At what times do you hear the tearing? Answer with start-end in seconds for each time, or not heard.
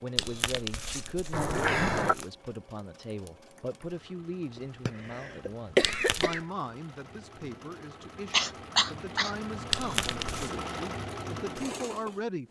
0.1-2.2, 5.8-6.4, 9.7-10.5.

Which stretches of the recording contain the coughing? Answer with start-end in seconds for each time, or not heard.
1.3-2.1, 4.5-6.4, 8.3-9.3.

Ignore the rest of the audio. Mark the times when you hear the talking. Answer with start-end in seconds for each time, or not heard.
0.0-12.4.